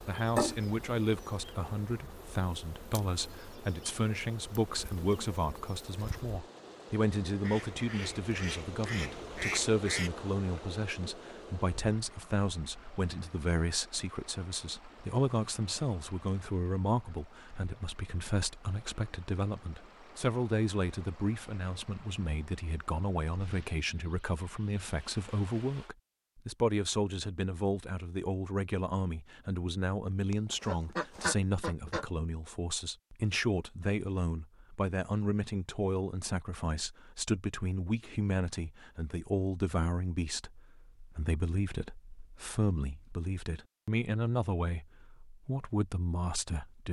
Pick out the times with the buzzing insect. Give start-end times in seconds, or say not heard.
0.0-6.4.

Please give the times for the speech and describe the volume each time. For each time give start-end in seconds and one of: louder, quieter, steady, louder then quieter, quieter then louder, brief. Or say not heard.
0.1-46.8 steady.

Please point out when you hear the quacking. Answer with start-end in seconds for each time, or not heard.
7.4-10.1, 30.3-32.0.